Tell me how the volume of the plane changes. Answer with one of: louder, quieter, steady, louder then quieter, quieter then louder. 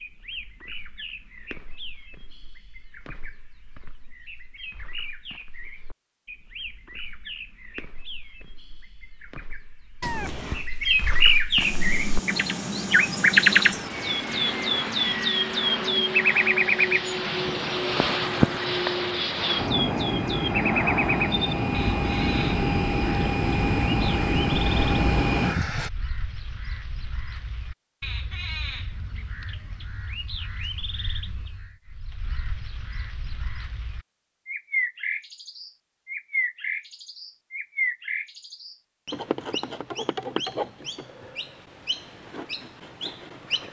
louder.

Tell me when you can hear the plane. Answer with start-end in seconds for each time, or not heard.
11.6-25.9.